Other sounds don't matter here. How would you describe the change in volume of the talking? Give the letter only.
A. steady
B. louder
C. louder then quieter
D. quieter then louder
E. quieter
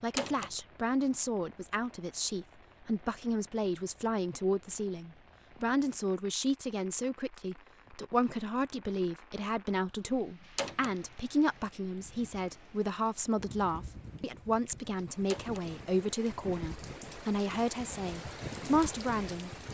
A.